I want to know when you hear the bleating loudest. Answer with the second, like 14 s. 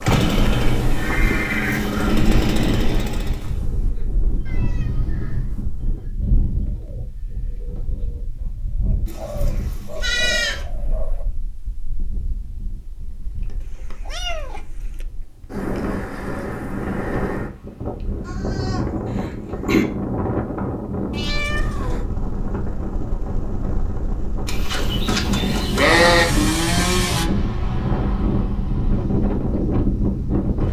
26 s.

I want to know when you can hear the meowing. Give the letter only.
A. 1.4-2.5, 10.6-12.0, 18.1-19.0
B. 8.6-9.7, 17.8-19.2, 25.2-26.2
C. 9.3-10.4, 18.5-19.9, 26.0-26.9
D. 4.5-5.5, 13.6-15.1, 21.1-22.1
D.